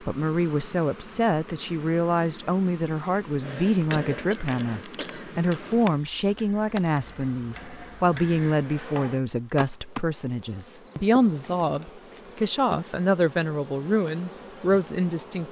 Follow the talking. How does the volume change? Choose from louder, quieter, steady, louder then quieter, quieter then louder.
steady.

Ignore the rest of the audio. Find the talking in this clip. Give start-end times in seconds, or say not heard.
0.1-15.4.